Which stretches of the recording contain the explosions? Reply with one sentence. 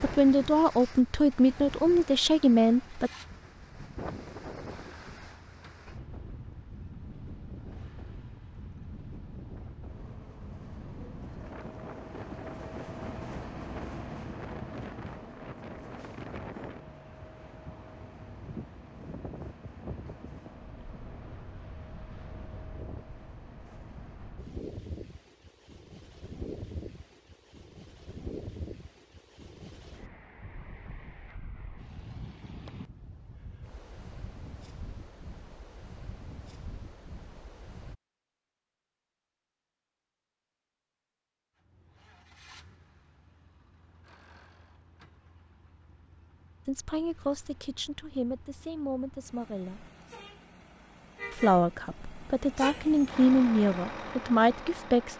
You can't hear the explosions here.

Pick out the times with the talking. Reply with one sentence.
The talking can be heard from 0.0 to 3.1 s, from 46.6 to 49.9 s and from 51.3 to 55.1 s.